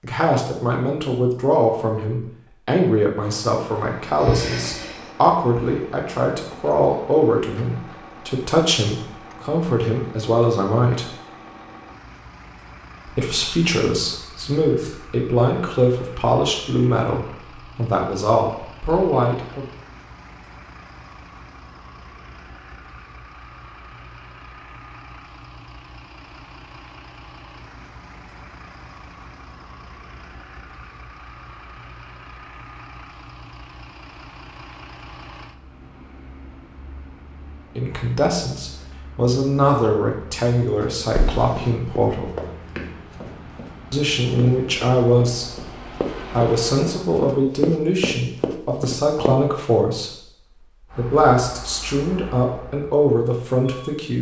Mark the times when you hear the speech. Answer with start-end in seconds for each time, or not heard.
0.0-11.1, 13.1-19.6, 37.8-42.3, 43.9-54.1.